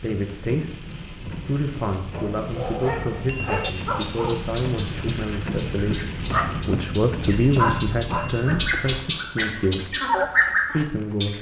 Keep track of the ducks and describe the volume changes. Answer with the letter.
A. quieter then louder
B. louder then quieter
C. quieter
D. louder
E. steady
D.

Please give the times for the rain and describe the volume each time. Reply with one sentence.
The rain can be heard from 0.0 to 8.9 s, getting louder.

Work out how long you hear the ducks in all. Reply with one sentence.
You can hear the ducks for 8 seconds altogether.